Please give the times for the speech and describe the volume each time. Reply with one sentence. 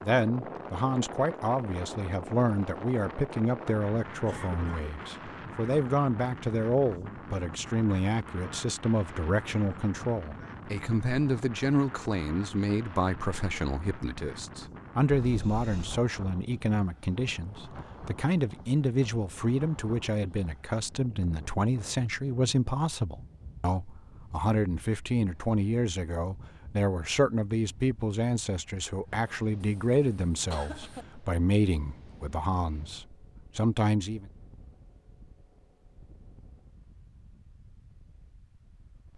You can hear the speech from 0.0 to 34.2 s, at a steady volume.